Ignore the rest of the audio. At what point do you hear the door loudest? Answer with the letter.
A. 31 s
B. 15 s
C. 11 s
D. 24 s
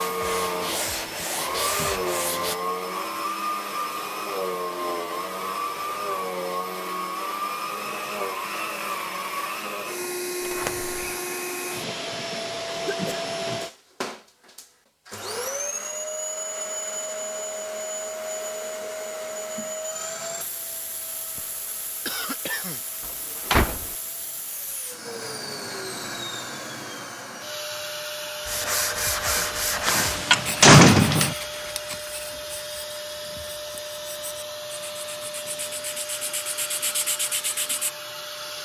A.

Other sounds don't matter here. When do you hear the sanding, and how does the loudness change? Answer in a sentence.
The sanding can be heard briefly from 0.0 to 2.5 s; and from 28.4 to 37.9 s, getting quieter then louder.